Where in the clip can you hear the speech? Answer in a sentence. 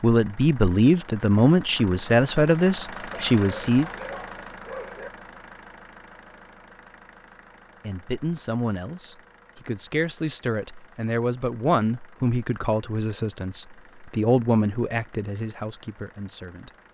The speech can be heard from 0.0 to 3.9 s and from 7.8 to 16.7 s.